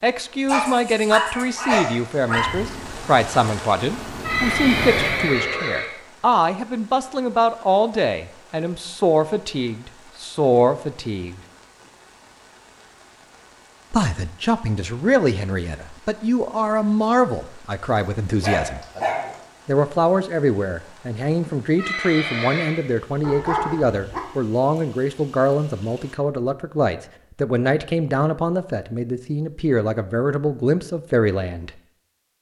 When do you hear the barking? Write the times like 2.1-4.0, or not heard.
0.5-2.5, 17.9-19.4, 23.2-24.2.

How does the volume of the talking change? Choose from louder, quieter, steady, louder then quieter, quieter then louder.
steady.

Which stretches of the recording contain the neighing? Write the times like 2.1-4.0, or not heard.
4.2-5.9, 21.8-22.8.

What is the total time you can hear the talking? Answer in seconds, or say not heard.
28 s.